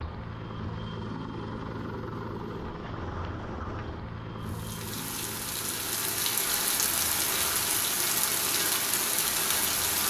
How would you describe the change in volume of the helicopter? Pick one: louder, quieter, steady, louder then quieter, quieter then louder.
quieter.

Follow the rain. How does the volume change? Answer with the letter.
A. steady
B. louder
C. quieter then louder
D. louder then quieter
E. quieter
B.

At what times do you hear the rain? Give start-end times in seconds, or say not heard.
4.4-10.0.